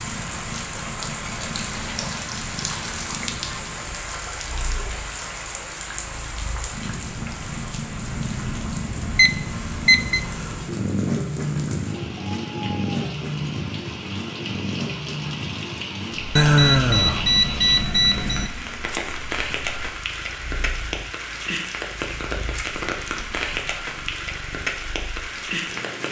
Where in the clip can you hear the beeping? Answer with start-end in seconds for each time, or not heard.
8.1-10.2, 16.4-18.5.